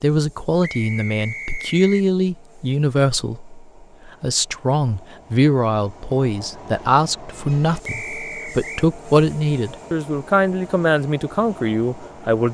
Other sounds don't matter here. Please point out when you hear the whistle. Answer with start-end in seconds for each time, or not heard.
0.6-2.0, 7.8-8.8.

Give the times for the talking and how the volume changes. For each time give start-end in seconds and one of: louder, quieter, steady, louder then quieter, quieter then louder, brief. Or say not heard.
0.0-12.4 steady.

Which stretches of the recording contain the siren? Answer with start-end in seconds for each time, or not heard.
not heard.